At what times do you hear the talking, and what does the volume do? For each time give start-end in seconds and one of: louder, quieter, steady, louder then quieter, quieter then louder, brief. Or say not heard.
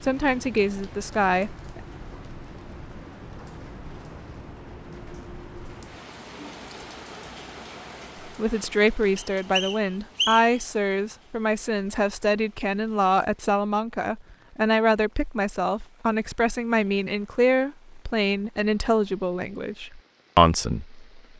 0.0-1.8 brief
8.2-21.3 steady.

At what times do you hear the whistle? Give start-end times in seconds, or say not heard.
9.2-10.6.